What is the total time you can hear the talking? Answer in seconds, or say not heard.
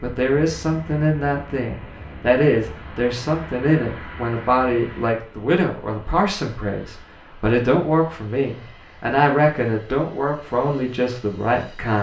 12 s.